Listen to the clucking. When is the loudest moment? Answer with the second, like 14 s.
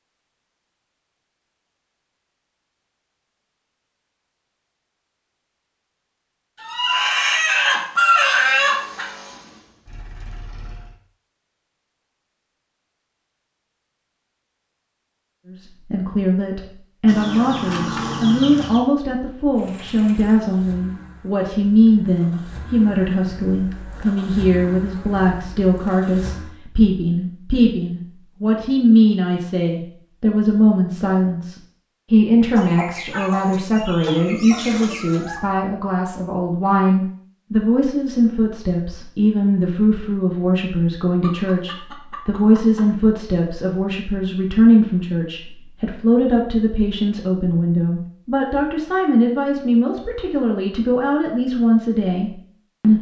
8 s.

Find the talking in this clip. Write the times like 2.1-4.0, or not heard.
15.5-52.9.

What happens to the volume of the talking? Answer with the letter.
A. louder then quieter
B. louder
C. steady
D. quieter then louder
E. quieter
C.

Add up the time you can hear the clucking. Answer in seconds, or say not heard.
9 s.